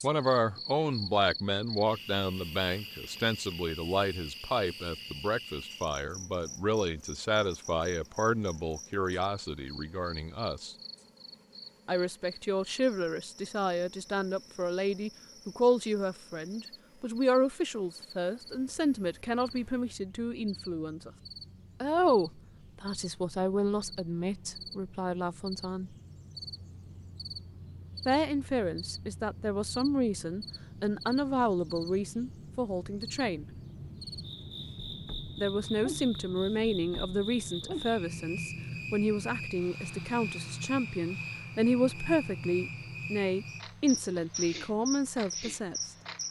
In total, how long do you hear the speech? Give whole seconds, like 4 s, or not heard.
40 s.